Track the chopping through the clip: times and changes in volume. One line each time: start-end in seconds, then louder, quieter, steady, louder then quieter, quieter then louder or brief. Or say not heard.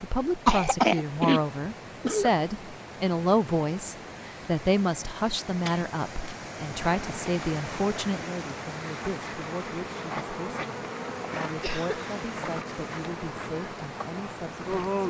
not heard.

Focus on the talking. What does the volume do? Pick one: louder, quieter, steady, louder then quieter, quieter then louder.
quieter.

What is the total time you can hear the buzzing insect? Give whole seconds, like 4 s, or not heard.
8 s.